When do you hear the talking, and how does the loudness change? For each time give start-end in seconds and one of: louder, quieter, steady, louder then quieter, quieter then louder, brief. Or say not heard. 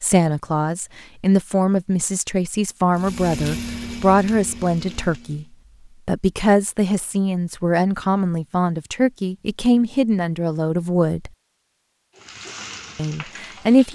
0.0-5.5 steady
6.0-11.3 steady
12.9-13.9 brief.